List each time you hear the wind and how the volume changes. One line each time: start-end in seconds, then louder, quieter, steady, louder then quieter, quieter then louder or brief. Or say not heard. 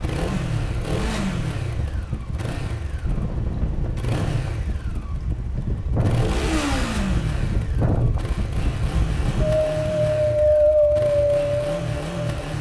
0.0-12.5 louder.